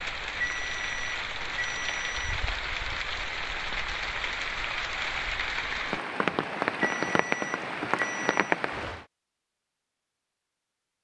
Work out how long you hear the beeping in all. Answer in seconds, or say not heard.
4 s.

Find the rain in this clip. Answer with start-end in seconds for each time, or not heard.
0.0-9.1.